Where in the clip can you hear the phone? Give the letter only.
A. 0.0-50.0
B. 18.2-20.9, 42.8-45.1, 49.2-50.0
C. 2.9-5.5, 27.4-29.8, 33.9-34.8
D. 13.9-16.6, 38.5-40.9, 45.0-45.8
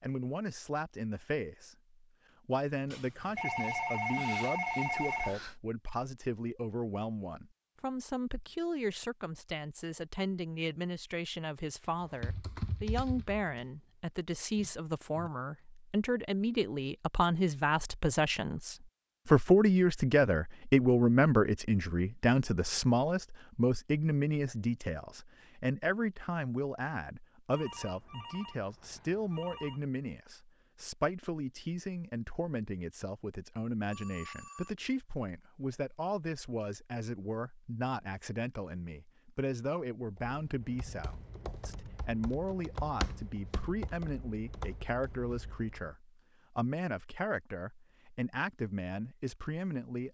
C.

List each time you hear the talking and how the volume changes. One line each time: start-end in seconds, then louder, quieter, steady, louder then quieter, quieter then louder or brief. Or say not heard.
0.0-50.0 louder then quieter.